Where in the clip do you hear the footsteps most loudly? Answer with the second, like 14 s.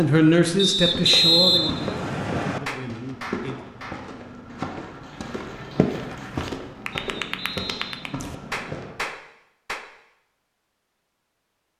6 s.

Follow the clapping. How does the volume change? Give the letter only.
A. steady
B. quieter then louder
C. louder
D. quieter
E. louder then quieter
B.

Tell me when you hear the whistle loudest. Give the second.
1 s.